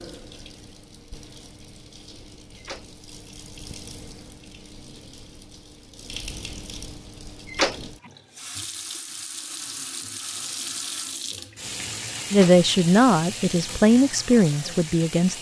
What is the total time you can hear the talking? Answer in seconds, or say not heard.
3 s.